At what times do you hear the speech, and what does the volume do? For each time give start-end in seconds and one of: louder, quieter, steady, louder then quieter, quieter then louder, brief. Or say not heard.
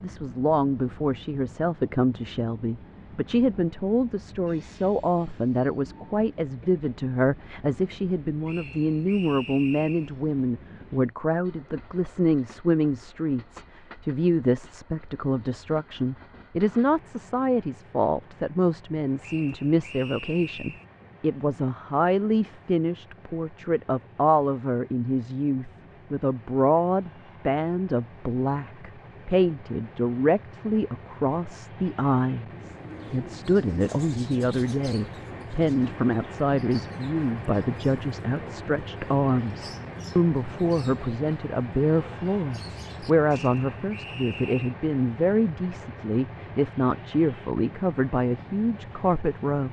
0.0-49.6 steady.